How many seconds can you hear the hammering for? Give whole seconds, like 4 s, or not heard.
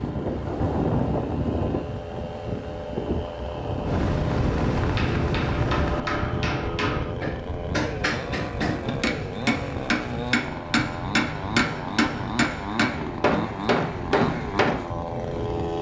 10 s.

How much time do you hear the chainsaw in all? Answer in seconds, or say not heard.
16 s.